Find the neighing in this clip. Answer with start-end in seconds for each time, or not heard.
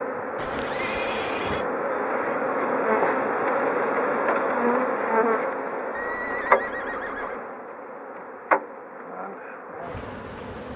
0.3-1.6, 5.9-7.4.